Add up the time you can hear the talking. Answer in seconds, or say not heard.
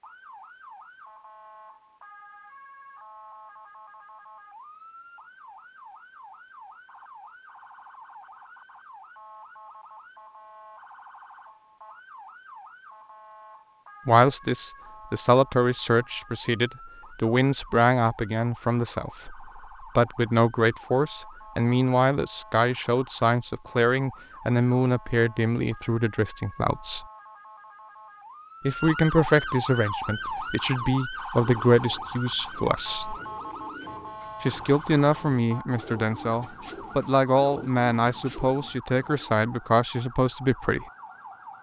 24 s.